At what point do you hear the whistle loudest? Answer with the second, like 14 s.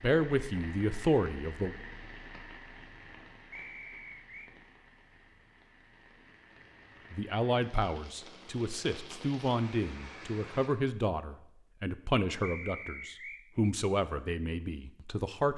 13 s.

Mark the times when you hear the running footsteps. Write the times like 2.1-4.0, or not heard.
not heard.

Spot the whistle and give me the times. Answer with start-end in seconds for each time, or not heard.
3.5-4.5, 12.4-13.4.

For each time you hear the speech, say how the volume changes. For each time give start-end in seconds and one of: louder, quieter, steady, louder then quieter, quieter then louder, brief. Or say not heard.
0.0-1.8 brief
7.1-15.5 steady.